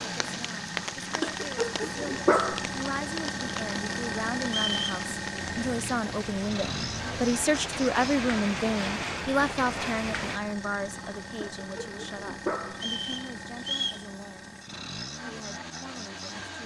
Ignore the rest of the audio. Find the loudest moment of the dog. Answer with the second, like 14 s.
2 s.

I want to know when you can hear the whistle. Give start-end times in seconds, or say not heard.
4.5-5.0, 12.8-14.1.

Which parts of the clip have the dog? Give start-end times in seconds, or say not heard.
1.2-2.6, 11.4-12.8.